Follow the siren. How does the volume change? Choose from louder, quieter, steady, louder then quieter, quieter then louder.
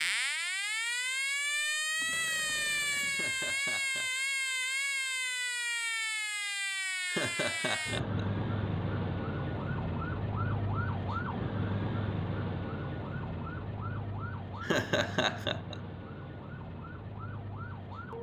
quieter.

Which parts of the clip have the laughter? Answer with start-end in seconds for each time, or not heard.
3.1-4.2, 7.0-8.2, 14.6-15.8.